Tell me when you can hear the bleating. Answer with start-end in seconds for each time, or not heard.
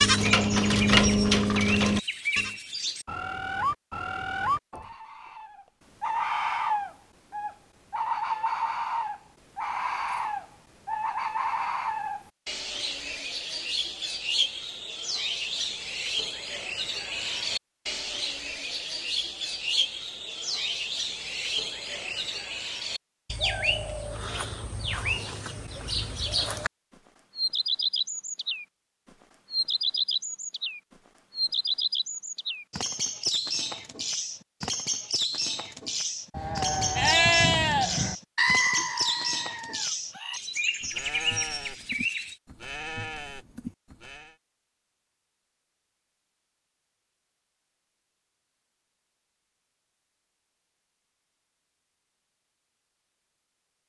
0.0-2.5, 36.3-44.4.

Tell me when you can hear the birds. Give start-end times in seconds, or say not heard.
0.2-26.7, 27.4-28.6, 29.5-42.4.